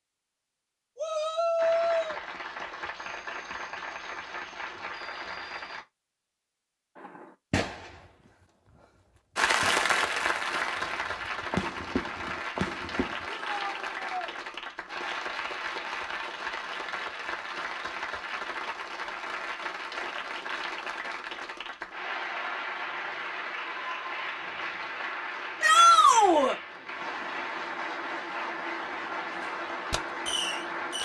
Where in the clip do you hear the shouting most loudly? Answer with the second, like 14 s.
26 s.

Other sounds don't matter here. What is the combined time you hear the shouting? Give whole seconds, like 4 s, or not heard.
3 s.